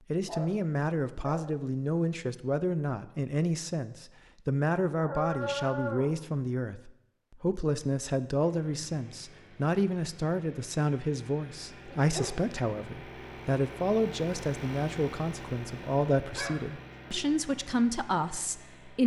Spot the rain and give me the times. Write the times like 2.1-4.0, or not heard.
not heard.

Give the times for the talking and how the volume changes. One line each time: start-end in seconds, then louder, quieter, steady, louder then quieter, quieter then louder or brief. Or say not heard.
0.1-19.0 steady.